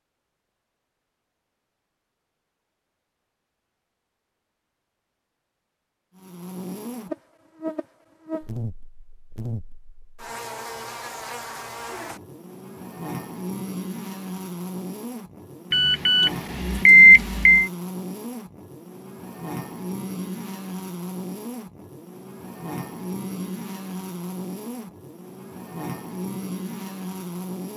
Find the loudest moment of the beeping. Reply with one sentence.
The loudest moment of the beeping is at 17 seconds.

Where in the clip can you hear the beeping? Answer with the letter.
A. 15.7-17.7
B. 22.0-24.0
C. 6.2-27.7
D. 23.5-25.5
A.